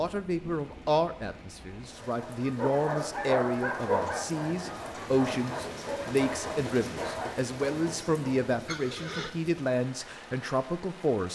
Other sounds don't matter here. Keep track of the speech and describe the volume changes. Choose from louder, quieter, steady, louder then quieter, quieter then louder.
steady.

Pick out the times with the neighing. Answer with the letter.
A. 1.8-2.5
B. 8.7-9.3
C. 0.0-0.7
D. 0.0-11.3
B.